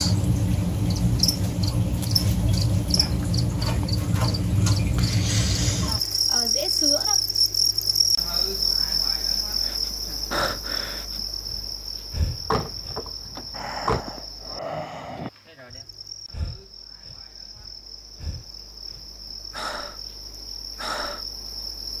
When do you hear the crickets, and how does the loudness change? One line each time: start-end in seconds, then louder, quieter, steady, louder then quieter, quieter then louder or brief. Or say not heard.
0.0-21.9 quieter.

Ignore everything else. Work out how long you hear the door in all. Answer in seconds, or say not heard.
2 s.